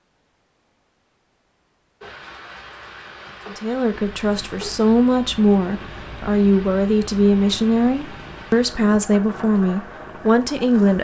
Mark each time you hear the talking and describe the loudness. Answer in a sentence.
You can hear the talking from 3.5 to 11.0 s, at a steady volume.